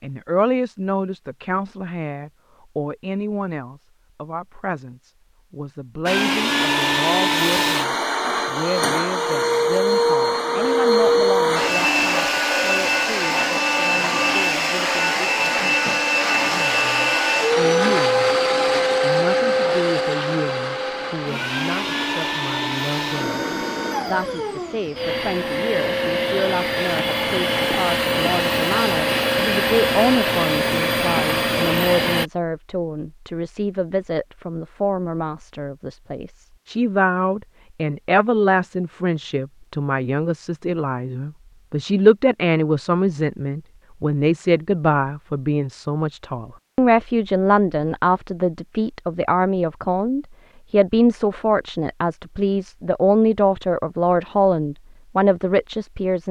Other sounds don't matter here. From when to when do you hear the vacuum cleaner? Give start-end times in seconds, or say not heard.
6.0-32.3.